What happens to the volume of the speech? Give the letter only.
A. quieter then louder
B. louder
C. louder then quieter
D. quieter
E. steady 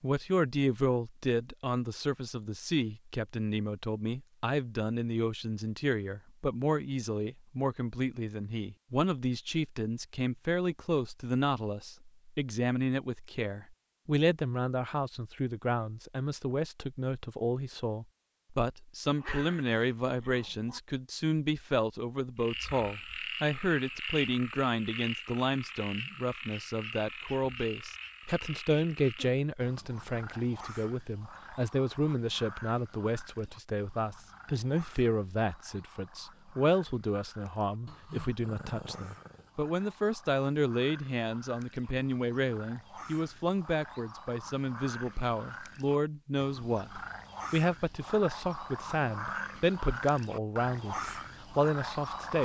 E.